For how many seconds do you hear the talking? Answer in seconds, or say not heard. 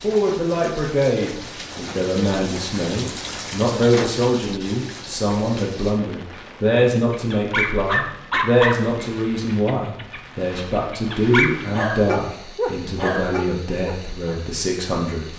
15 s.